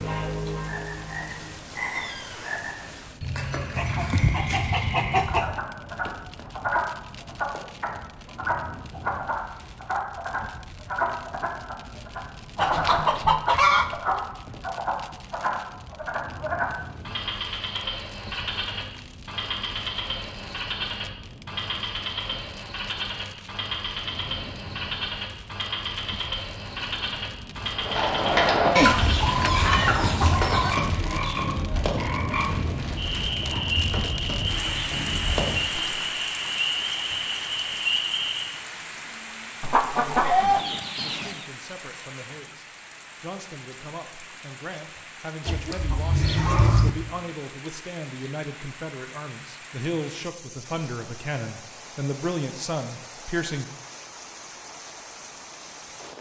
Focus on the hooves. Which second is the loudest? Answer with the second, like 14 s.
29 s.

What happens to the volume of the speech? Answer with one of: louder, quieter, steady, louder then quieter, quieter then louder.
louder.